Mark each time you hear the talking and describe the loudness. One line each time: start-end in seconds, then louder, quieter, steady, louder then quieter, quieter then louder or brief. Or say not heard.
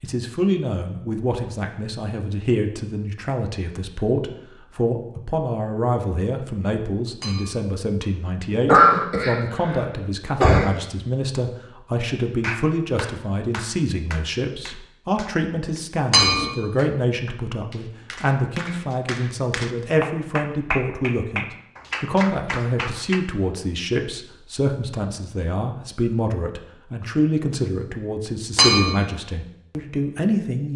0.0-30.7 steady.